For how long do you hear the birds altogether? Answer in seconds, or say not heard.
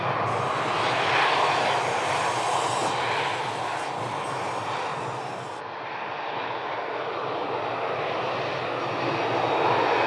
not heard.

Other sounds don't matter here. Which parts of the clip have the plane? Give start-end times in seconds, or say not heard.
0.0-10.0.